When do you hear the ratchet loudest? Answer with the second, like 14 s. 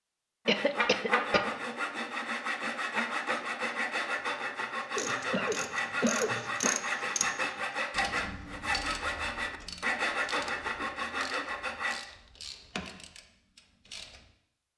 7 s.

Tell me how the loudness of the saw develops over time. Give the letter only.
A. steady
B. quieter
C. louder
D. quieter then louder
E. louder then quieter
A.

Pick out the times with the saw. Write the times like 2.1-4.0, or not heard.
0.5-12.0.